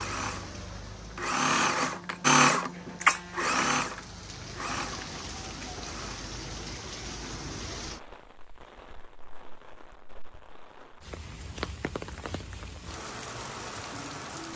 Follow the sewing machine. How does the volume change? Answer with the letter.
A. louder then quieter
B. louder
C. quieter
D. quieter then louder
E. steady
A.